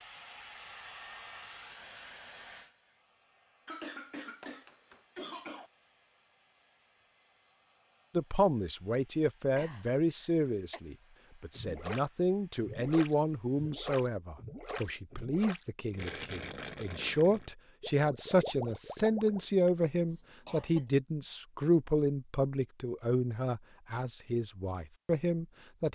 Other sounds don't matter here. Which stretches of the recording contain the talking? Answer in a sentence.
The talking can be heard from 8.2 to 25.9 s.